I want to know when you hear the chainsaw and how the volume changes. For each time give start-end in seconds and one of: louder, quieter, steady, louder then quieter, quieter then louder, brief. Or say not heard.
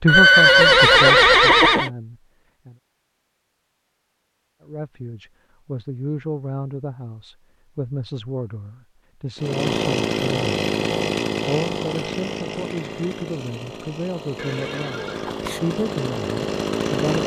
9.3-17.2 quieter then louder.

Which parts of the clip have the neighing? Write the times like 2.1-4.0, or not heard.
0.1-1.9, 14.3-15.6.